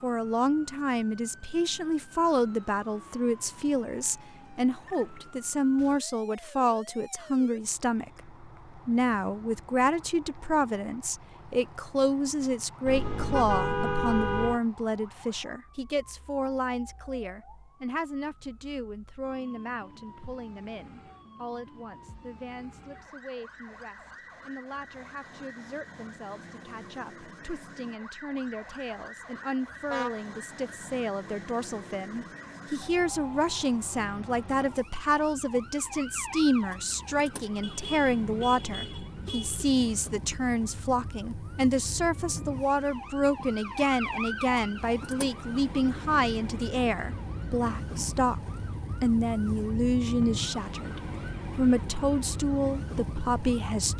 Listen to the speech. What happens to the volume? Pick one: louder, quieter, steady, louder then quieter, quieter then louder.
quieter then louder.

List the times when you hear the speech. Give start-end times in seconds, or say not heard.
0.0-48.4, 49.0-53.9.